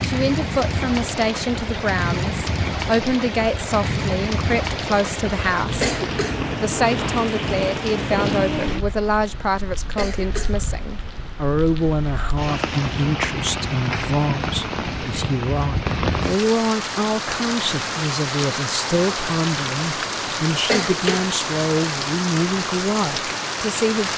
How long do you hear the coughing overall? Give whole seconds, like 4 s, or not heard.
2 s.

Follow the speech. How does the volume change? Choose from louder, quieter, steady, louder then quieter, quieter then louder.
steady.